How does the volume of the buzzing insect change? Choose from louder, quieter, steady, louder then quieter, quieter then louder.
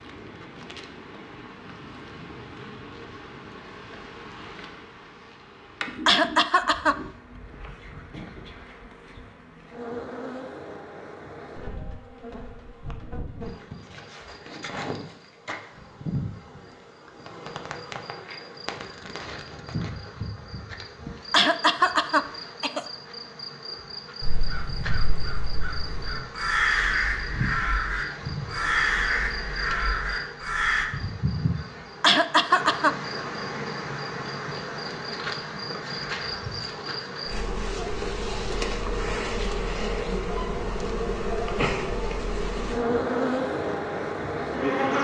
louder.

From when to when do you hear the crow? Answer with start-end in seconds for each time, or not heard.
24.2-30.9.